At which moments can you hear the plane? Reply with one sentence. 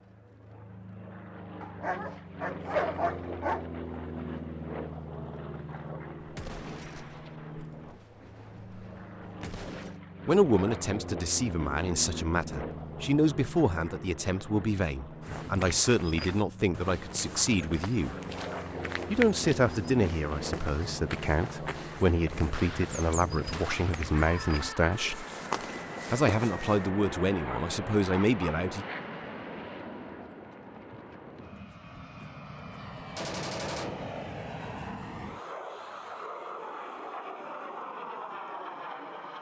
The plane can be heard from 0.0 to 39.3 s.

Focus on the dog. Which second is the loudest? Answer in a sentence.
The volume of the dog peaks at 3 seconds.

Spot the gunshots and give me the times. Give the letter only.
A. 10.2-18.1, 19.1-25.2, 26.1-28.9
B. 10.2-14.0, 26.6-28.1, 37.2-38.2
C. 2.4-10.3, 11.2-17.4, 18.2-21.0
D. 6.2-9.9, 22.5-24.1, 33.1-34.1
D.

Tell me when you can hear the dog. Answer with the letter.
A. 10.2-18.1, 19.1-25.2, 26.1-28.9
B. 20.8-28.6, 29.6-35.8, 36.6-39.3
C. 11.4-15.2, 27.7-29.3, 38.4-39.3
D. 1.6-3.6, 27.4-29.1
D.